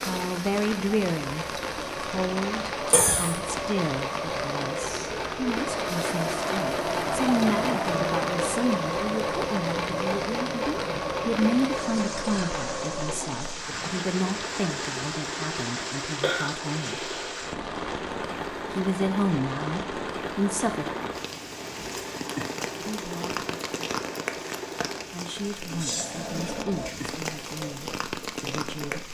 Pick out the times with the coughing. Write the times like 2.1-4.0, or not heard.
2.9-3.4, 16.2-17.5.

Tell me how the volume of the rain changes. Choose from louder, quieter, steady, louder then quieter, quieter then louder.
steady.